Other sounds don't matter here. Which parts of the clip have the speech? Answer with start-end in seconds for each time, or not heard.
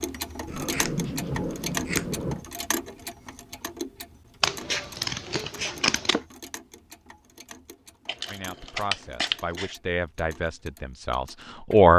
8.2-11.9.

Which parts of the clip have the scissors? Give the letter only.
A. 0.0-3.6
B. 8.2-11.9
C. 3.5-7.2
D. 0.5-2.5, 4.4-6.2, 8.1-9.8
D.